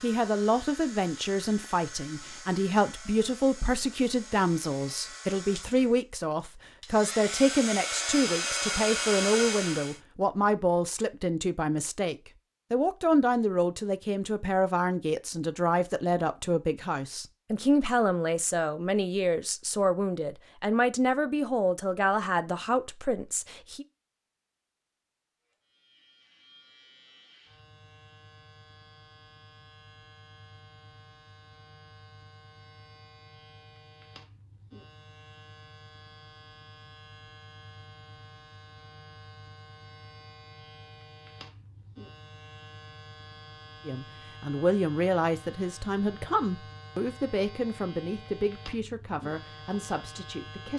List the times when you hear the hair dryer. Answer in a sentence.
You can hear the hair dryer from 0.0 to 10.0 s.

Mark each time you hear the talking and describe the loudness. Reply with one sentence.
You can hear the talking from 0.0 to 23.9 s, at a steady volume; and from 43.9 to 50.7 s, getting quieter.